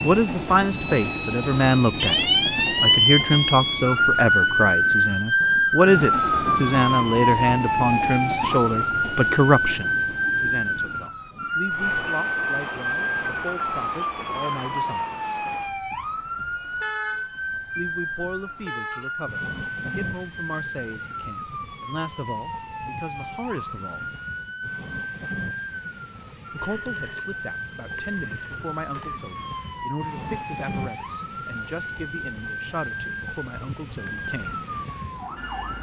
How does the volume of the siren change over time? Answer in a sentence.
The loudness of the siren goes down.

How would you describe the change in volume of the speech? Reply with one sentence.
The volume of the speech goes down.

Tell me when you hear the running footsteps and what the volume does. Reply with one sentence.
The running footsteps can't be heard in this clip.